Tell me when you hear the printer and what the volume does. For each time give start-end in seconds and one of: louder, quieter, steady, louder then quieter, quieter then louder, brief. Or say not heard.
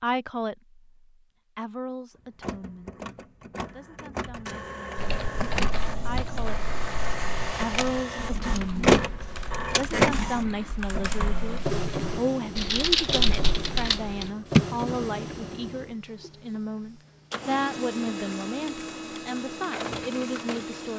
2.4-20.9 louder then quieter.